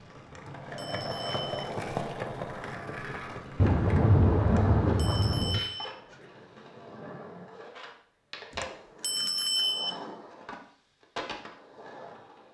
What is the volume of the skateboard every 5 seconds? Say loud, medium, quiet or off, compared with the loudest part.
loud, medium, medium.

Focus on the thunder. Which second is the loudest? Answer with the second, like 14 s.
4 s.